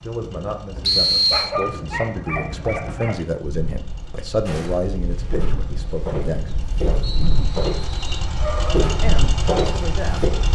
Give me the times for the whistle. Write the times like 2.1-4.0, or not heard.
0.8-1.5, 7.0-8.2.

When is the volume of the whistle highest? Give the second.
1 s.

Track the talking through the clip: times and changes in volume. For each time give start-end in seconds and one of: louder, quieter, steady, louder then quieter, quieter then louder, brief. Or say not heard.
0.0-6.5 louder then quieter
8.9-10.2 brief.